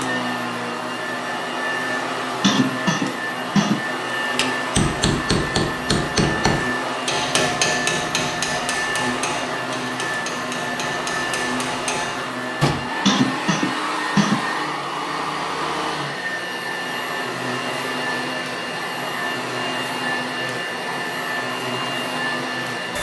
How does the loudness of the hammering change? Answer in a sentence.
The loudness of the hammering goes down.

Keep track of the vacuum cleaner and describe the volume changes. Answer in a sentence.
The volume of the vacuum cleaner stays about the same.